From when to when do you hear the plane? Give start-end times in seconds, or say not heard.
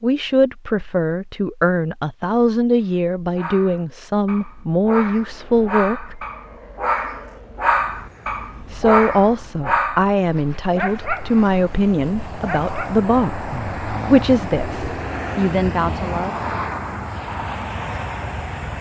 5.2-18.7.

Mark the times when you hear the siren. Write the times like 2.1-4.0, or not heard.
not heard.